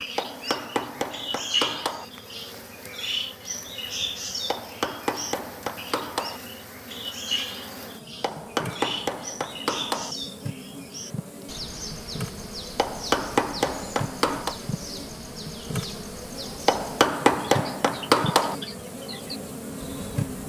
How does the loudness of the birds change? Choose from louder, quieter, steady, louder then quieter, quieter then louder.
quieter.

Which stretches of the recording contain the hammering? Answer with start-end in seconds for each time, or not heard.
0.1-2.0, 4.5-6.4, 8.2-10.2, 12.8-14.6, 16.6-18.6.